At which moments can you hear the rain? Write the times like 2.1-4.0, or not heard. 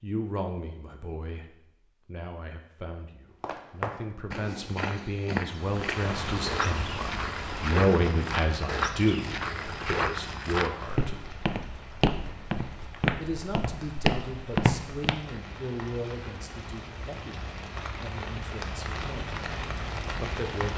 5.5-20.7.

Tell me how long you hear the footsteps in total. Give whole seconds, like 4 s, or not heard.
12 s.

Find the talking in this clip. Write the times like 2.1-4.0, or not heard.
0.0-11.2, 13.2-19.3, 20.2-20.7.